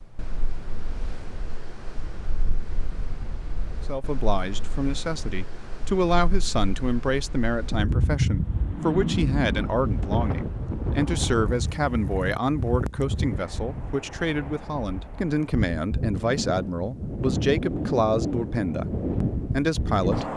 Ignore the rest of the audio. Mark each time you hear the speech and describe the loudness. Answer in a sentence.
The speech can be heard from 3.9 to 18.9 s, at a steady volume; and briefly from 19.5 to 20.3 s.